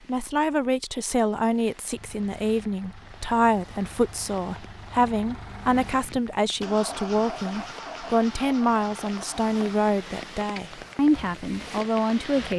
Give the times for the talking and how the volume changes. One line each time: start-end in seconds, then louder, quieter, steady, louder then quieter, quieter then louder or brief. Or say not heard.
0.1-12.5 steady.